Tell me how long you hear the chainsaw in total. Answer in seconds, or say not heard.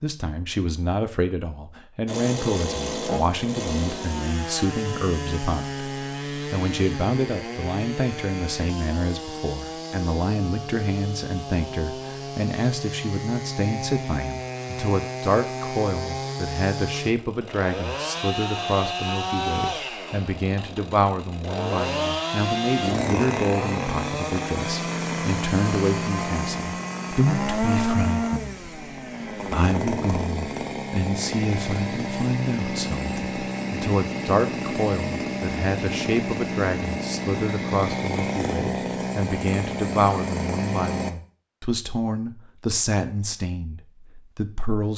39 s.